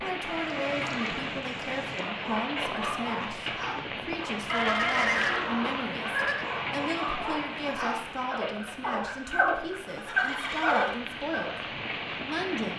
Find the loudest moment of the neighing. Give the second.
5 s.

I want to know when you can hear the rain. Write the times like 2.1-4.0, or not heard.
0.0-12.7.